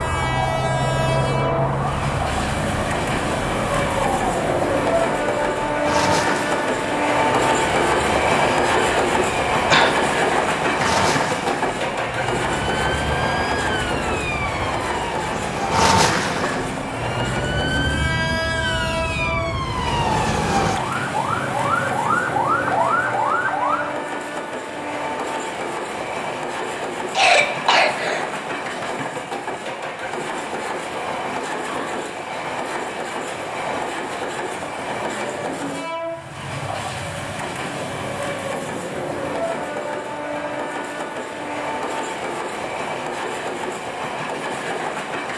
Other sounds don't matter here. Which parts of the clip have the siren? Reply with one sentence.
You can hear the siren from 0.0 to 23.9 s.